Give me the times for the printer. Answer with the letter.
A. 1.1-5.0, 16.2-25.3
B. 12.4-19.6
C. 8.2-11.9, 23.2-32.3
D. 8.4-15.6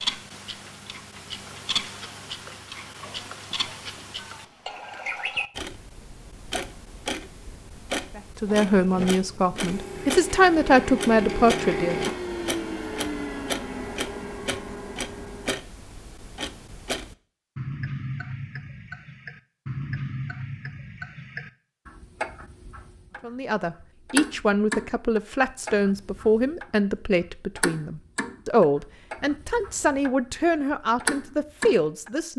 D.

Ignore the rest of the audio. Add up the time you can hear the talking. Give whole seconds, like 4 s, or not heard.
13 s.